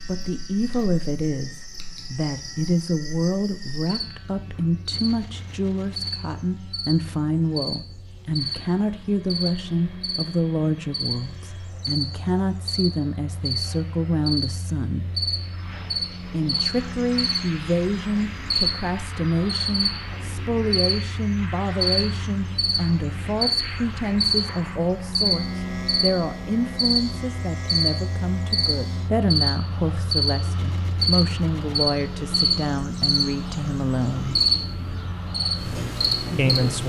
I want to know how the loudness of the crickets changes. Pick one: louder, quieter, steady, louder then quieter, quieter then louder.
louder.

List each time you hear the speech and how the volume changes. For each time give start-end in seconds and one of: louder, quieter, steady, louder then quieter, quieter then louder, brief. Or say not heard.
0.1-15.1 steady
16.3-34.5 steady
36.4-36.8 brief.